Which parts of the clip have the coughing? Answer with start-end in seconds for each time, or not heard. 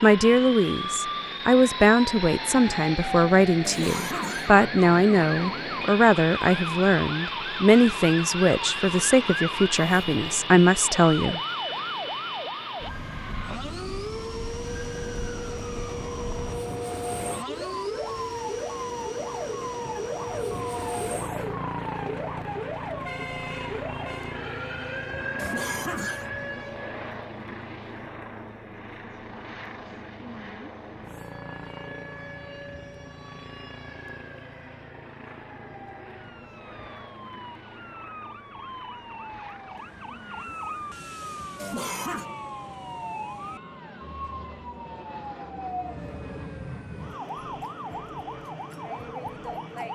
3.6-4.5, 25.4-26.3, 41.5-42.2.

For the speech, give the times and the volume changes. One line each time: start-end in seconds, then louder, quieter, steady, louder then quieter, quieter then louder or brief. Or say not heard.
0.0-11.4 steady.